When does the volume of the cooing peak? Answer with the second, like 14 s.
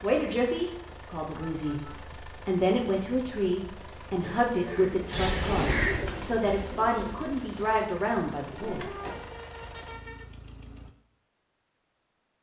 6 s.